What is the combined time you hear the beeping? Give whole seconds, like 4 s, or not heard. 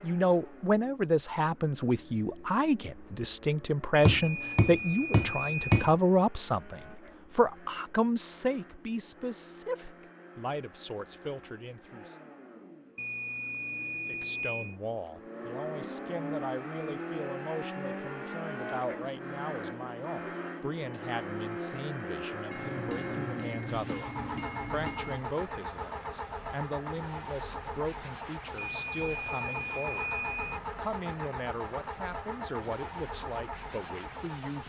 6 s.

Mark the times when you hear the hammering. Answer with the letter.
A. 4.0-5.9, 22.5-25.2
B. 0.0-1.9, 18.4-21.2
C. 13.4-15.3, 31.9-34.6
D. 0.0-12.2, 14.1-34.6
A.